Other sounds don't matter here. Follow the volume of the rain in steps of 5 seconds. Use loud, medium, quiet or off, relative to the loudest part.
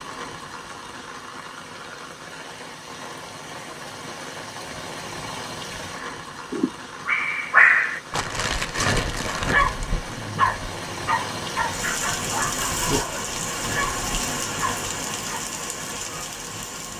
medium, medium, loud, loud.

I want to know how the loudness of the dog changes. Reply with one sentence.
The volume of the dog goes down.